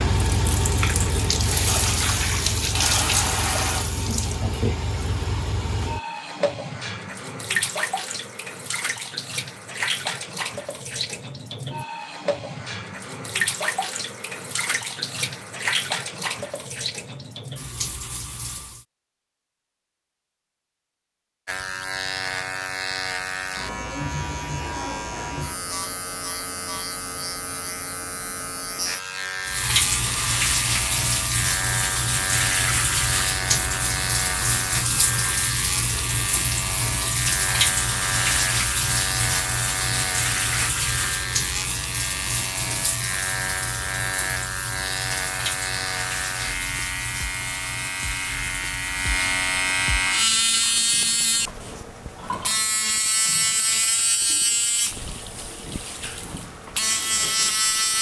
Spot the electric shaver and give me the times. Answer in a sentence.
You can hear the electric shaver from 21.4 to 57.9 s.